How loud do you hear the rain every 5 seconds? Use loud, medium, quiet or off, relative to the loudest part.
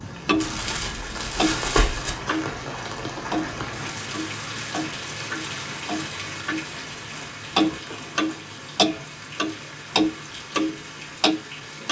loud, loud, medium.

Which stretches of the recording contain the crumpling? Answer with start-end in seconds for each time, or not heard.
0.3-2.1, 6.7-8.4.